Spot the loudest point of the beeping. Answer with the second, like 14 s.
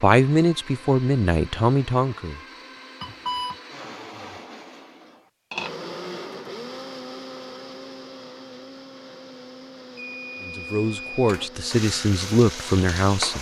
3 s.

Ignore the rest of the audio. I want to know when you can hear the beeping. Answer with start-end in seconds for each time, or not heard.
3.0-3.6, 9.9-11.5.